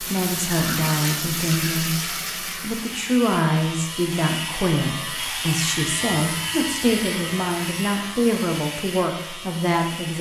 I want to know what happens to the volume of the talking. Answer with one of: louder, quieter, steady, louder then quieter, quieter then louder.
steady.